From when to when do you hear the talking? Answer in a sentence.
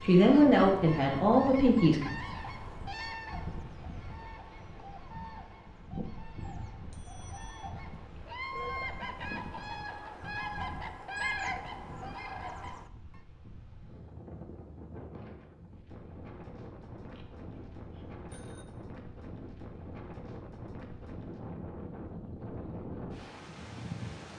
You can hear the talking from 0.0 to 2.0 s.